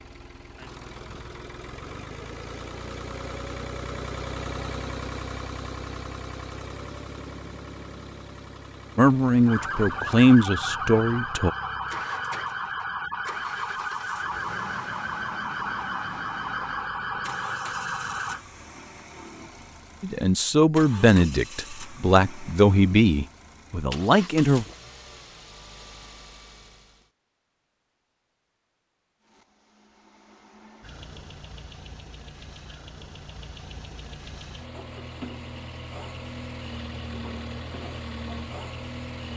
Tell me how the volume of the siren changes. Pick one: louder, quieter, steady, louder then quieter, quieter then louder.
steady.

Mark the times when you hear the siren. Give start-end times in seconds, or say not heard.
9.4-18.4.